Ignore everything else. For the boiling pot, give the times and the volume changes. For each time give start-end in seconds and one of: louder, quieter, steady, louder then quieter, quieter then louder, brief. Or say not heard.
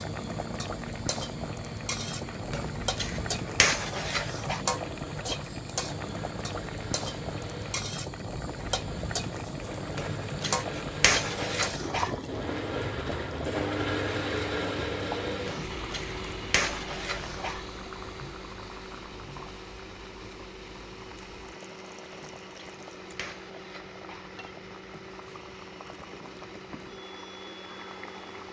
0.0-28.4 quieter.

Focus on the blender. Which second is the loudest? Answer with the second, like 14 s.
14 s.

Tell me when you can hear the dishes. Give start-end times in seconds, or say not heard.
2.5-4.6, 9.9-12.2, 15.4-17.6, 22.1-24.6.